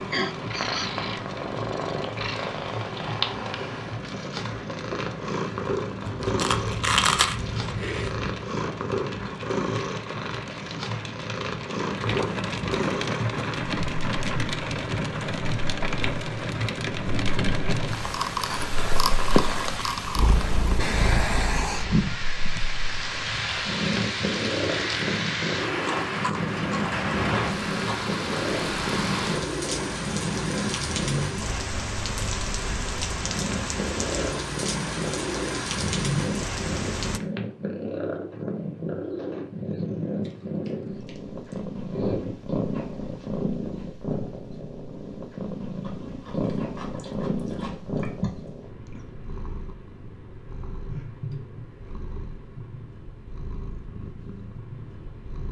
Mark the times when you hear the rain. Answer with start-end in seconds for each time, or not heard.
0.0-37.2.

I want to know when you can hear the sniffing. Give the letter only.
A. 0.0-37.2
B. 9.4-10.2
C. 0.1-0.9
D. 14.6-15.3
C.